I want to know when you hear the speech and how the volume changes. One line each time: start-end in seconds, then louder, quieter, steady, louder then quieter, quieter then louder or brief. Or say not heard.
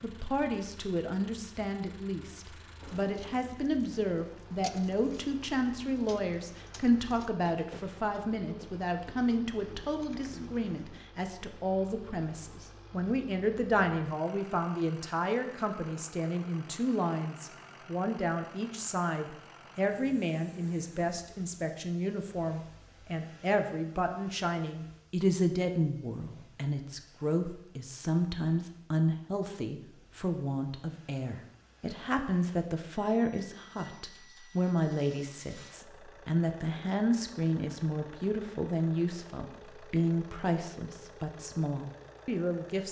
0.0-42.8 steady.